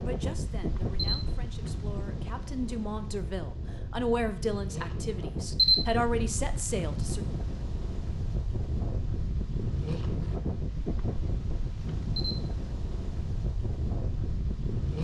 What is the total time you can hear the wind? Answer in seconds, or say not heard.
15 s.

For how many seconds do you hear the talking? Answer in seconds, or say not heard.
7 s.